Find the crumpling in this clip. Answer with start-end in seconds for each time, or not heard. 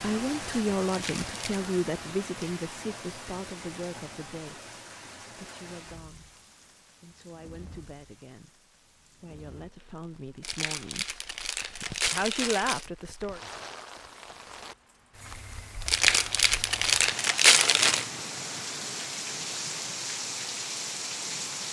0.8-1.6, 10.4-12.8, 15.8-18.1.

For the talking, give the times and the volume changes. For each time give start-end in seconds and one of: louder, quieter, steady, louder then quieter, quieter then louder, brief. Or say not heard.
0.0-4.6 quieter
5.4-6.4 brief
7.0-8.6 brief
9.2-11.1 brief
12.1-13.4 brief.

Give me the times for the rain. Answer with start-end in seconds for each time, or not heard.
0.0-21.6.